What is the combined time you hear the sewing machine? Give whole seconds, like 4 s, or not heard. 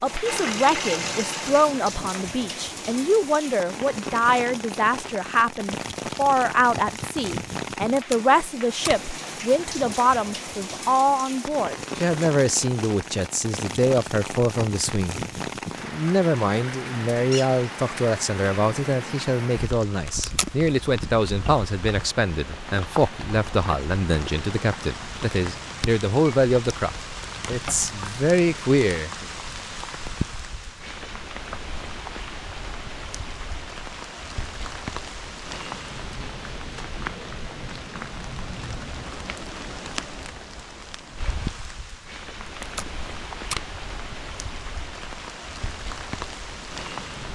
2 s.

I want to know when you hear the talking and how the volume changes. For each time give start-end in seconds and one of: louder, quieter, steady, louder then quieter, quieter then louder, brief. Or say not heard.
0.0-15.2 steady
15.8-29.2 steady.